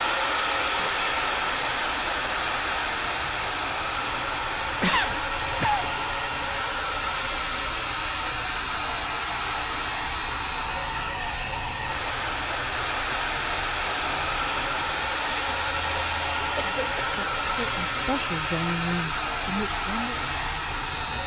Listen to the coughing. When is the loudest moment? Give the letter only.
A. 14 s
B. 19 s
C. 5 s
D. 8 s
C.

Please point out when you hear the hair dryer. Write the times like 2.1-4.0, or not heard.
0.0-21.2.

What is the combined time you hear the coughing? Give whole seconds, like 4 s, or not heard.
2 s.